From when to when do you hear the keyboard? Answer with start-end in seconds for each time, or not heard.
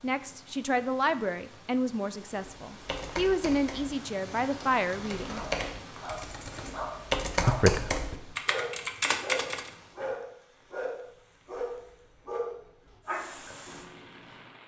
2.5-9.7.